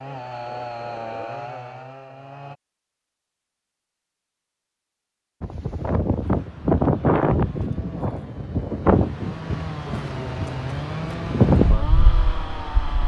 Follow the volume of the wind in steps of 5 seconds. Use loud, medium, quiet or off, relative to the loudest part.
off, loud, loud.